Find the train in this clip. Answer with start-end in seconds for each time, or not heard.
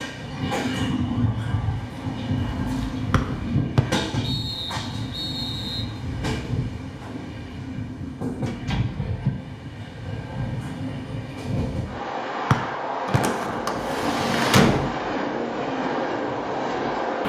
0.0-17.2.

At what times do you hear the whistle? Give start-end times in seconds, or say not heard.
3.1-5.8, 12.5-13.2.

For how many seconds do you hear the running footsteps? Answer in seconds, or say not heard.
not heard.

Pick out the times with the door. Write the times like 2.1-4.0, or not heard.
2.6-3.5, 8.4-9.3, 13.1-14.9.